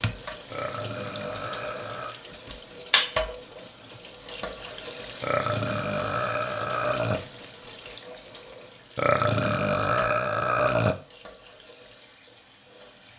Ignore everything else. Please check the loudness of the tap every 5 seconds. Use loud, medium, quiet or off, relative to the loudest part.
loud, medium, quiet.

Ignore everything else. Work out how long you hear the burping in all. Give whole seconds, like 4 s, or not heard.
6 s.